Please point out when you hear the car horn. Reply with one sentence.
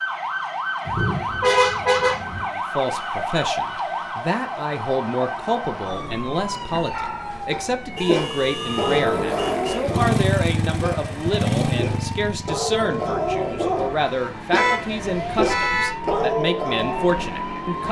The car horn can be heard from 0.8 to 2.5 s, from 8.0 to 9.9 s and from 14.6 to 15.9 s.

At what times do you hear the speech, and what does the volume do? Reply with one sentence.
You can hear the speech from 2.5 to 17.8 s, at a steady volume.